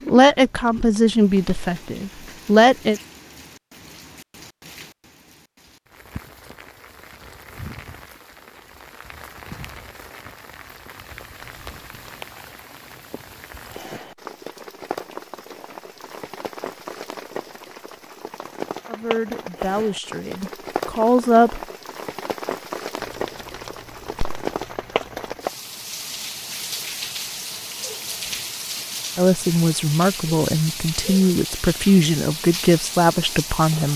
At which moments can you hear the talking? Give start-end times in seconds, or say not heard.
0.1-3.0, 18.9-21.6, 29.1-33.9.